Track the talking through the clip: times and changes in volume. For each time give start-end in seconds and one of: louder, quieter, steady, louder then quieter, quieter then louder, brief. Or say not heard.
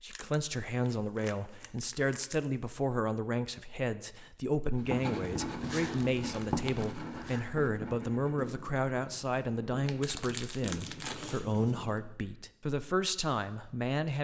0.0-14.1 steady.